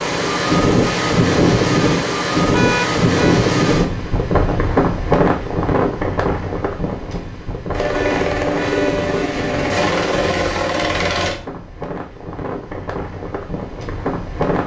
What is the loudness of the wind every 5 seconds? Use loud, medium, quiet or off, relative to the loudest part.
loud, medium, medium.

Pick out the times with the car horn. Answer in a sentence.
The car horn can be heard from 2.5 to 3.5 s and from 7.9 to 9.1 s.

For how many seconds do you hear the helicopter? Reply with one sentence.
The helicopter can be heard for 4 seconds in total.